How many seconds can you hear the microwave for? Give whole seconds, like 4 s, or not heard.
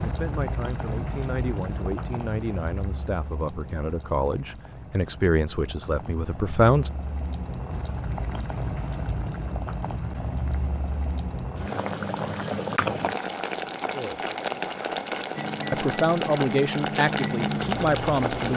3 s.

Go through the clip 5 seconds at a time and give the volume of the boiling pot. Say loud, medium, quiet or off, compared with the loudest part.
medium, medium, loud, loud.